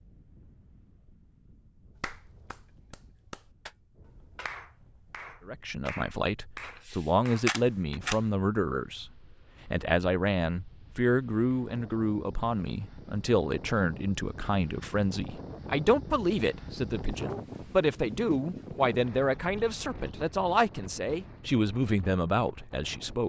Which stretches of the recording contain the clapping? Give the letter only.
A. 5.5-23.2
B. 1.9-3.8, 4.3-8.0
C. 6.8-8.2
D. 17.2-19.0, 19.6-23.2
B.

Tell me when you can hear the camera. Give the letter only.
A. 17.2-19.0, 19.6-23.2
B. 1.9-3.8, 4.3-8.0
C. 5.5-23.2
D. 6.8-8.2
D.